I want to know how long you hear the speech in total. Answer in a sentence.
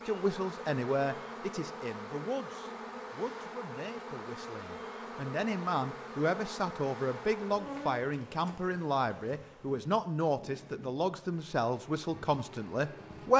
The speech can be heard for 13 seconds in total.